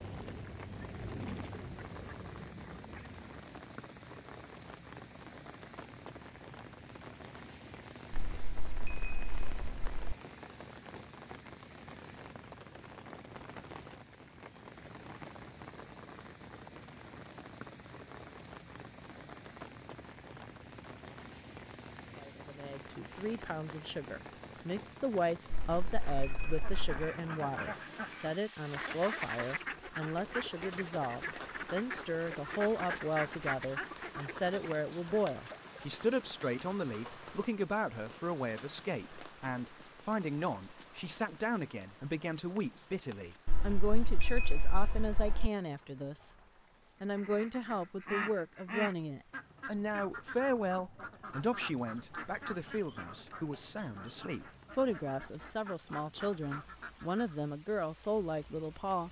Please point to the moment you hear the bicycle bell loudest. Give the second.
44 s.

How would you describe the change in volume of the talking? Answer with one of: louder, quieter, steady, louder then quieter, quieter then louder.
steady.